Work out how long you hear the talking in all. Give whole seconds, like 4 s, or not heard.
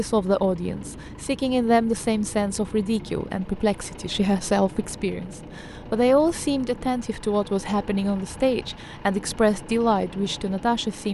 11 s.